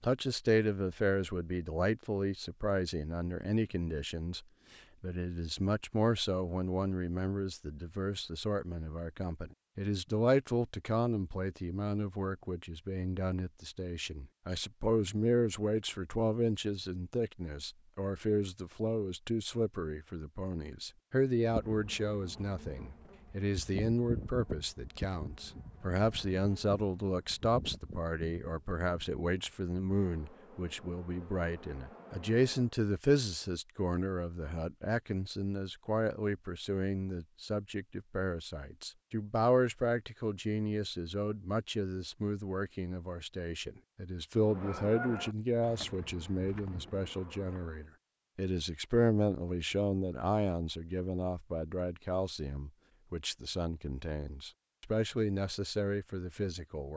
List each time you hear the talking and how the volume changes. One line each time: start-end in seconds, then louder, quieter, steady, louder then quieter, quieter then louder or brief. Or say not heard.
0.0-56.9 steady.